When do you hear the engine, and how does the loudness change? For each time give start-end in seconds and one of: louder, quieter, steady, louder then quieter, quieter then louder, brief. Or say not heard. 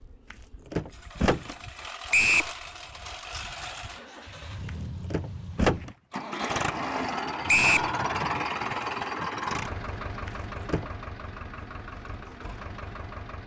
0.0-13.4 louder then quieter.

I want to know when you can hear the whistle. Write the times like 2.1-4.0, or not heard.
2.1-2.5, 7.5-7.9.